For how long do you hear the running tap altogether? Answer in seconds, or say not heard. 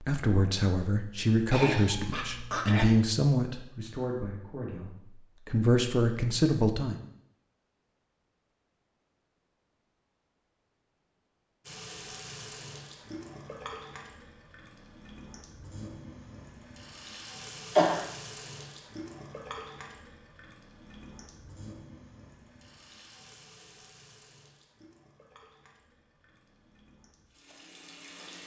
17 s.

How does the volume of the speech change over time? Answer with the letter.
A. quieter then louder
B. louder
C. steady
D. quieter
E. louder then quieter
A.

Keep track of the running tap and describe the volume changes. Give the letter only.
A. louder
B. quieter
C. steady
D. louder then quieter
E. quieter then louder
B.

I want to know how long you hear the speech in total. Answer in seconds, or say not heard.
7 s.